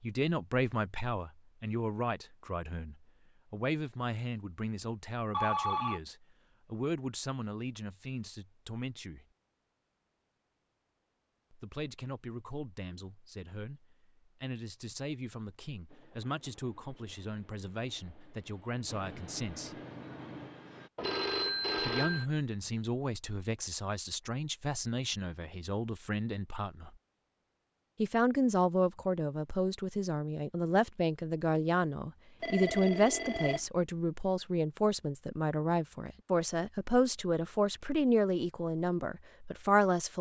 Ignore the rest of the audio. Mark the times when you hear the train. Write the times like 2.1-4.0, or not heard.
15.8-20.9.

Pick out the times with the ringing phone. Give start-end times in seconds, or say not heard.
5.3-6.0, 20.9-22.2, 32.4-33.7.